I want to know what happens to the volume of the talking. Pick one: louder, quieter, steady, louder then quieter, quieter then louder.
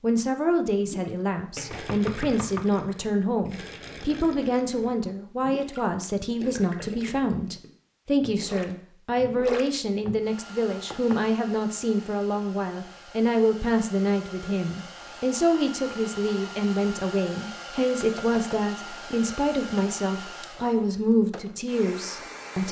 steady.